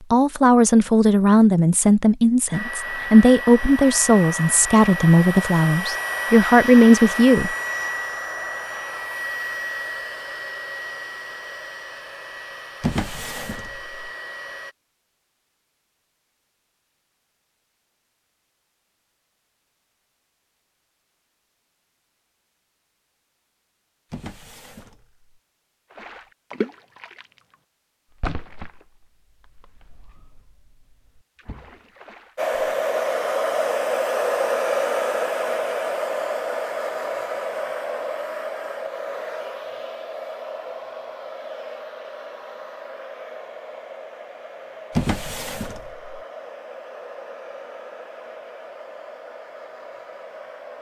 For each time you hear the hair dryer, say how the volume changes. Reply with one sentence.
The hair dryer can be heard from 2.5 to 14.8 s, getting quieter; and from 32.4 to 50.7 s, getting quieter.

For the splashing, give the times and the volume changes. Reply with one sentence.
The splashing can be heard briefly from 25.9 to 27.4 s; and from 28.2 to 32.5 s, getting quieter then louder.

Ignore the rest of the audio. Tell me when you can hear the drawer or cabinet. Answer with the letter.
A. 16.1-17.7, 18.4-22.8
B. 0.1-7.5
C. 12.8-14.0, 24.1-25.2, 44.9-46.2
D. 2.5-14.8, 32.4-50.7
C.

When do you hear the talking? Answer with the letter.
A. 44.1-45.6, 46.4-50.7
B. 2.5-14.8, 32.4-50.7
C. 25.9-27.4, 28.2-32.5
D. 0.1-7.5
D.